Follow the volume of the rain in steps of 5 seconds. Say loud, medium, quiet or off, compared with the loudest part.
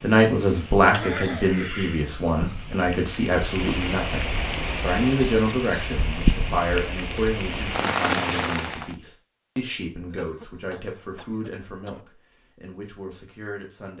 medium, loud, off.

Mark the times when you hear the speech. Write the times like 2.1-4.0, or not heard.
0.0-13.9.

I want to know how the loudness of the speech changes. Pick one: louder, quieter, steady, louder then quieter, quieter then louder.
quieter.